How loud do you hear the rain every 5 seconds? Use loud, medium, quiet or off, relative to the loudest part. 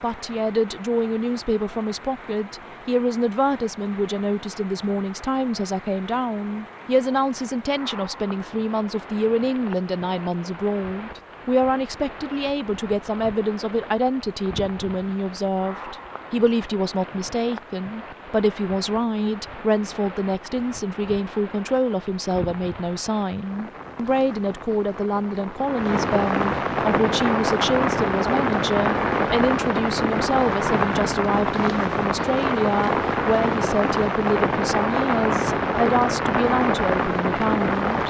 quiet, quiet, quiet, quiet, quiet, loud, loud, loud.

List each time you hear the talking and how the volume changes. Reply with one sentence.
You can hear the talking from 0.0 to 38.0 s, at a steady volume.